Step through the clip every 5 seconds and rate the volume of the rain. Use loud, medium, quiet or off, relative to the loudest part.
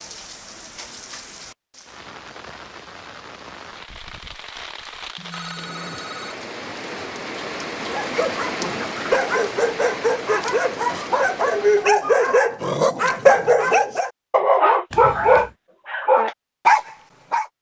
medium, loud, loud, off.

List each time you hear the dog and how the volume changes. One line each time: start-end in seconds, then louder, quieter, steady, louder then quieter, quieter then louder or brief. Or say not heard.
7.8-17.4 louder.